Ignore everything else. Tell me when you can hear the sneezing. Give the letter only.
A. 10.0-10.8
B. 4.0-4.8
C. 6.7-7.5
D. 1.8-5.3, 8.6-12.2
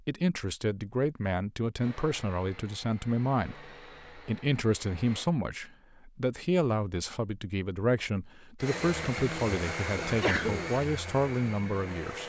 A.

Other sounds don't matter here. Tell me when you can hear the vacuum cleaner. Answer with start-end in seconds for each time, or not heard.
1.8-5.3, 8.6-12.2.